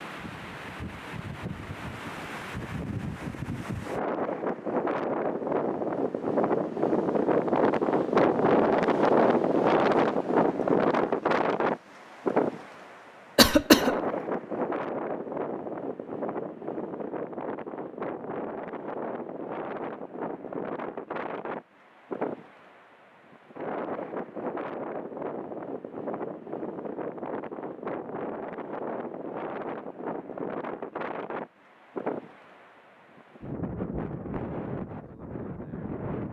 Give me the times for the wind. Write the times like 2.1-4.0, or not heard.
0.0-36.2.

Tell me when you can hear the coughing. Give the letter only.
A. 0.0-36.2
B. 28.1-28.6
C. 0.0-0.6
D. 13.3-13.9
D.